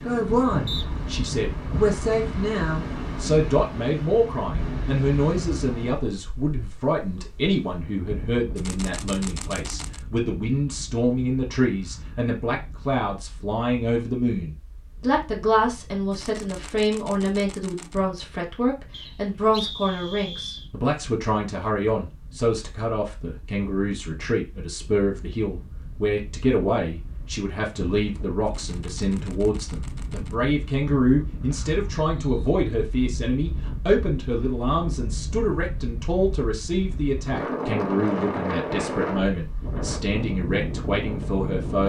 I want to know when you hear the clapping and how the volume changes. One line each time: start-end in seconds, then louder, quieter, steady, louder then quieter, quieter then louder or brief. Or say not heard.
not heard.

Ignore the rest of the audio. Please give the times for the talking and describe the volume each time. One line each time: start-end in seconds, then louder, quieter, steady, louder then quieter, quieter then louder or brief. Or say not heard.
0.0-41.8 steady.